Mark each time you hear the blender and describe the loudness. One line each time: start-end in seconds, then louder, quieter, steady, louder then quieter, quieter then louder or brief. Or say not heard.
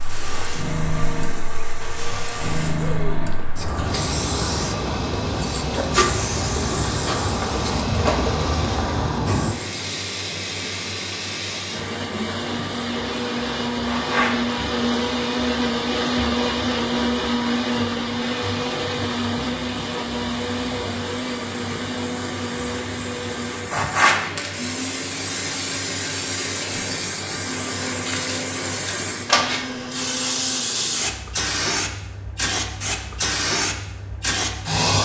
0.0-31.1 louder then quieter.